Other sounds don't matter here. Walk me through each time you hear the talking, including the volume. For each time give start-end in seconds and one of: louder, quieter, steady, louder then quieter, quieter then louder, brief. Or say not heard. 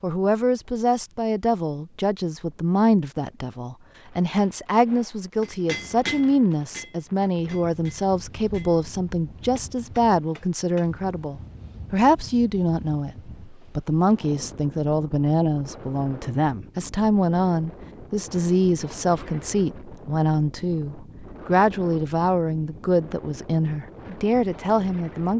0.0-25.3 steady.